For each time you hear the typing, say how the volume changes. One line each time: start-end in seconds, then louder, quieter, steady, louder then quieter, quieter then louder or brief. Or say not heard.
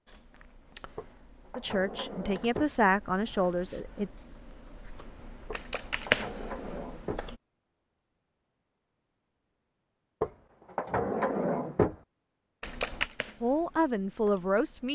0.1-7.4 louder
12.6-14.9 brief.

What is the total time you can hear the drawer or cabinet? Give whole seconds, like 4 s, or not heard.
5 s.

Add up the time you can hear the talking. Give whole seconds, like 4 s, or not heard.
4 s.